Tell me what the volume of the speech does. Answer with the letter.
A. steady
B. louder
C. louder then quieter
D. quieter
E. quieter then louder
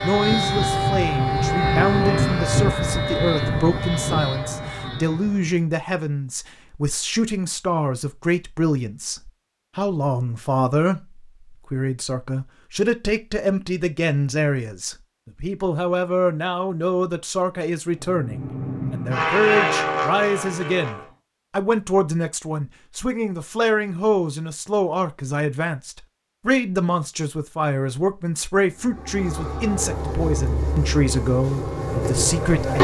A.